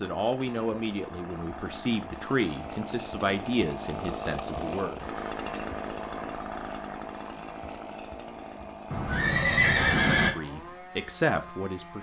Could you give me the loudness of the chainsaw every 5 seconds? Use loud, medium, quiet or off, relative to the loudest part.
loud, loud, medium.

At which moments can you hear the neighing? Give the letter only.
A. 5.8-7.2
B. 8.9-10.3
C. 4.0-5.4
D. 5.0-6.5
B.